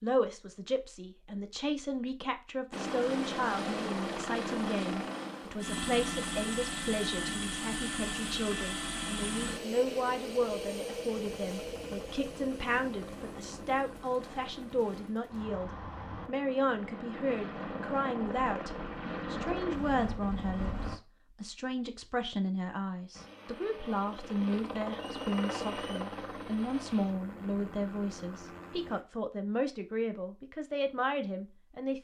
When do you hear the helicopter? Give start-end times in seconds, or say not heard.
2.7-21.0, 23.1-29.1.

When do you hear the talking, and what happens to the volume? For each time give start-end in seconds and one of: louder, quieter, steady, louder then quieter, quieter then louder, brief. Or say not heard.
0.0-31.9 steady.